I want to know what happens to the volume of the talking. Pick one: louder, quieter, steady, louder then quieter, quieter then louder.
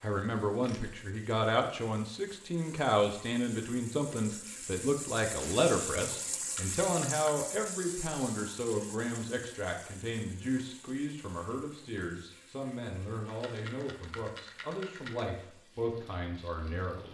quieter.